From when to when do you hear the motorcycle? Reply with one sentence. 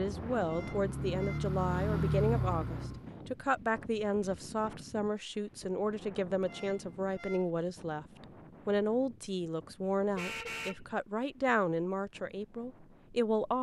You can hear the motorcycle from 0.0 to 3.1 s.